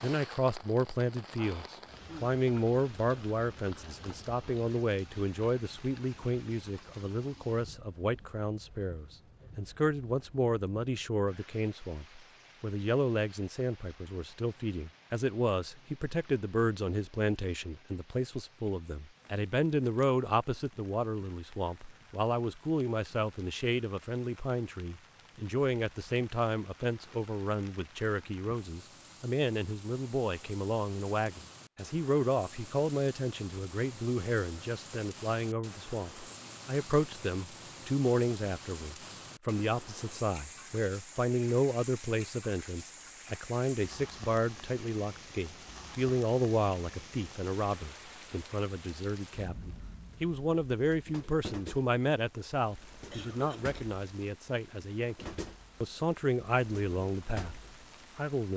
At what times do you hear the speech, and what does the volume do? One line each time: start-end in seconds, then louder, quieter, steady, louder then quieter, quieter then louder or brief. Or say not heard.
0.0-58.5 steady.